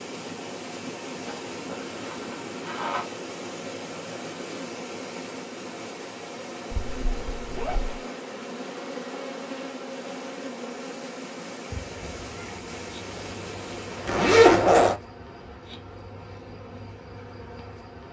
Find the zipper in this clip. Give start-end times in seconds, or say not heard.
1.2-3.0, 6.7-8.0, 14.1-14.9.